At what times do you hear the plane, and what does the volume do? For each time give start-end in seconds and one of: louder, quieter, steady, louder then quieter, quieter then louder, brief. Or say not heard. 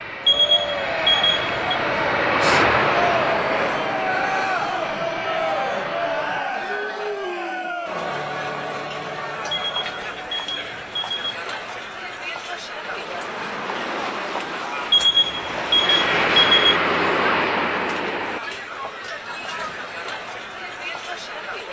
0.0-6.5 louder then quieter
12.8-18.4 louder.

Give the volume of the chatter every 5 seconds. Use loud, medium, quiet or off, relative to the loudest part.
loud, loud, medium, medium, medium.